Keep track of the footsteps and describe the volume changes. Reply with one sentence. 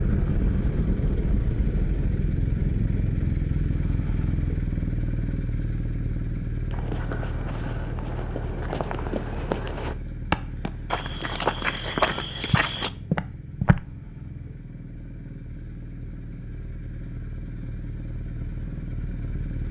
The volume of the footsteps goes up.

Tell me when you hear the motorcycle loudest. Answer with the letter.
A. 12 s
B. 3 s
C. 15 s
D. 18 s
B.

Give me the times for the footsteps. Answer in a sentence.
You can hear the footsteps from 6.7 to 13.8 s.